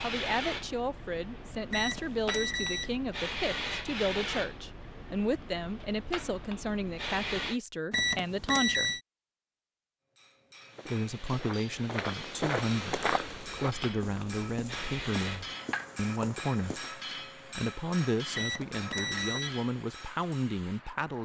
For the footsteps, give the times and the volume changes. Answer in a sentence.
The footsteps can be heard from 10.7 to 16.9 s, getting louder then quieter.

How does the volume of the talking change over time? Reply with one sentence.
The volume of the talking stays about the same.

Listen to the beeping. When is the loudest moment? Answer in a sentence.
The volume of the beeping peaks at 9 seconds.